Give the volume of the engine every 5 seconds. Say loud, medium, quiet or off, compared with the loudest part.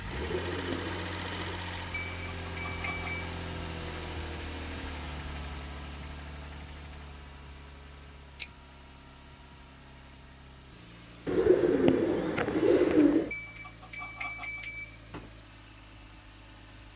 loud, medium, quiet, quiet.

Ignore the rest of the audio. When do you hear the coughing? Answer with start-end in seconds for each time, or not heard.
not heard.